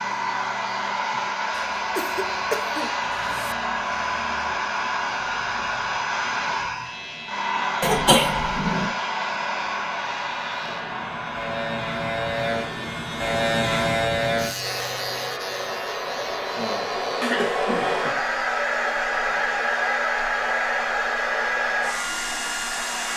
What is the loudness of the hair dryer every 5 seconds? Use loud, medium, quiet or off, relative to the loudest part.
loud, loud, medium, loud, loud.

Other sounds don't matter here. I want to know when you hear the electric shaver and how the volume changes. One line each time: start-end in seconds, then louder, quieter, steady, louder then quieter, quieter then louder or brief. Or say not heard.
0.0-23.1 louder then quieter.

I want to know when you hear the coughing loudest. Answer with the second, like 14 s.
8 s.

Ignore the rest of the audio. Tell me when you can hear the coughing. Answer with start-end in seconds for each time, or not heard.
1.8-3.5, 7.8-8.9, 17.2-18.1.